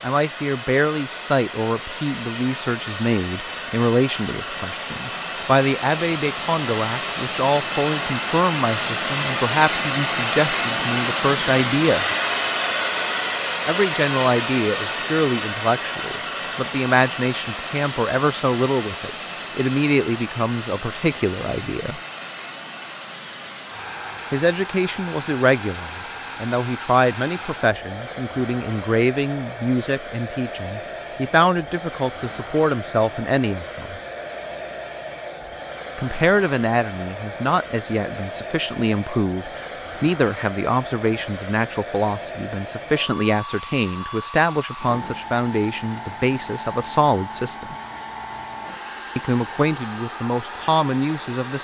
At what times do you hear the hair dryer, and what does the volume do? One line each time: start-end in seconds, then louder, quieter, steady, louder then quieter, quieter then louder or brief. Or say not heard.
0.0-51.5 quieter.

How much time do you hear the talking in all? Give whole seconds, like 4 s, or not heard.
44 s.